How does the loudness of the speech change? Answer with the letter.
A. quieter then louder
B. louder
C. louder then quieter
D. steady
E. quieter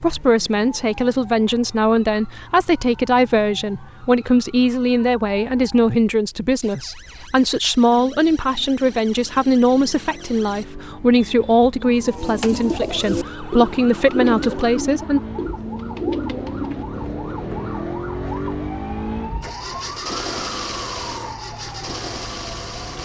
D.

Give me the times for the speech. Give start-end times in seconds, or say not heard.
0.0-15.2.